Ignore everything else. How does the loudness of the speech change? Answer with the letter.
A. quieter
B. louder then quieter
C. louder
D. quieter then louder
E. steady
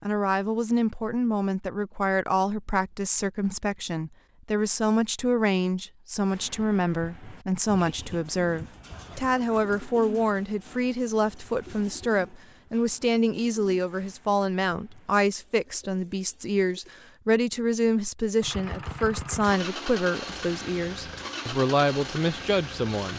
E.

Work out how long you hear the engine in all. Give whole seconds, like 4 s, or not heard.
5 s.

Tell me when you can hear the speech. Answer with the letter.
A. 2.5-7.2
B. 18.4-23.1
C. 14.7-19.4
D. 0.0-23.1
D.